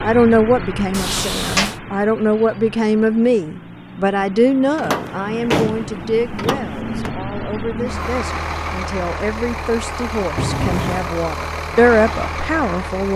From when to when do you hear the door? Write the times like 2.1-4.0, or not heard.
0.9-1.8, 4.8-7.2, 10.3-11.2.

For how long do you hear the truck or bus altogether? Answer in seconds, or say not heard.
13 s.